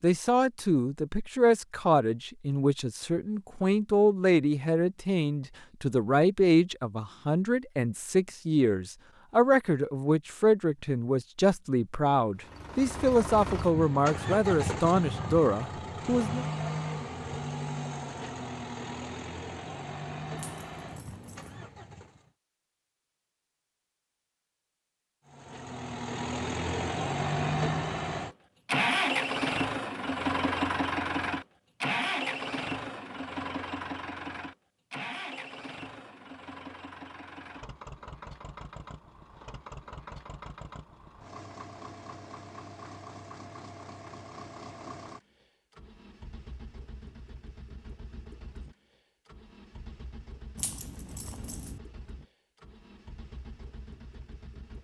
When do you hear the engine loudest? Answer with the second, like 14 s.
29 s.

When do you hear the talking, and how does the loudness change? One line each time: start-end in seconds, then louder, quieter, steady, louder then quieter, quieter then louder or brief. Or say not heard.
0.0-16.4 steady.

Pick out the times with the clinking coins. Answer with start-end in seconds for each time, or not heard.
20.4-21.6, 50.5-51.8.